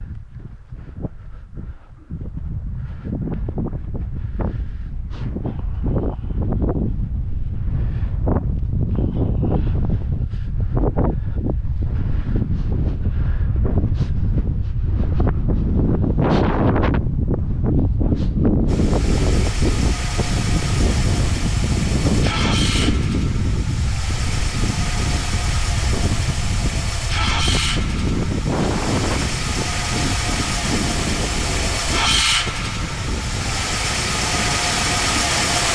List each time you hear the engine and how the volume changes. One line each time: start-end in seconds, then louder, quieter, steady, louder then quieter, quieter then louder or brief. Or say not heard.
18.6-35.6 louder.